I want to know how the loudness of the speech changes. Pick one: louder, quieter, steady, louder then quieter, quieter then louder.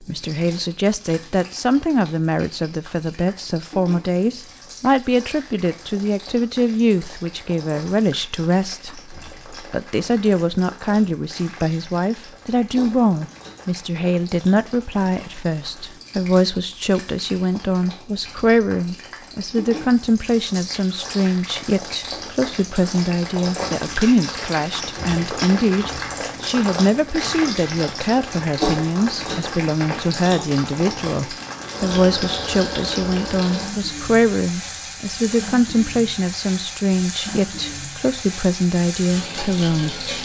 steady.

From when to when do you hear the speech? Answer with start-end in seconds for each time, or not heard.
0.0-40.1.